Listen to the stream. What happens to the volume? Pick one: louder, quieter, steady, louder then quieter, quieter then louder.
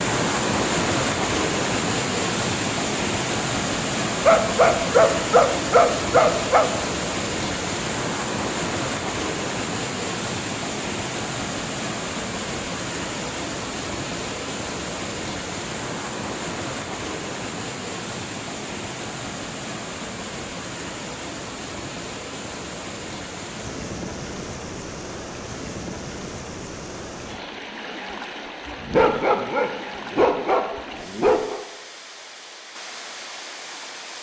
quieter.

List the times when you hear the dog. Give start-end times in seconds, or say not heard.
4.2-6.7, 28.8-31.6.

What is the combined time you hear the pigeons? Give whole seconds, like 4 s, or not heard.
not heard.